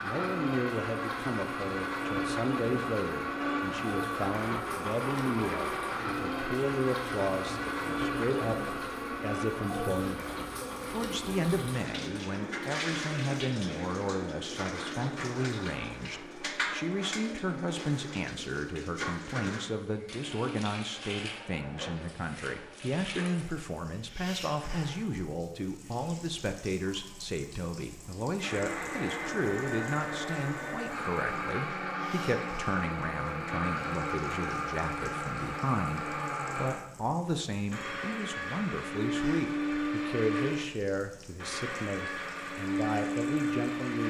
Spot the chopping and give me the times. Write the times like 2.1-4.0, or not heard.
not heard.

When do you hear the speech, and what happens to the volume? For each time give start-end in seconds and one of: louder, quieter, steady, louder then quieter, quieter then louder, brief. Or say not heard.
0.0-44.0 steady.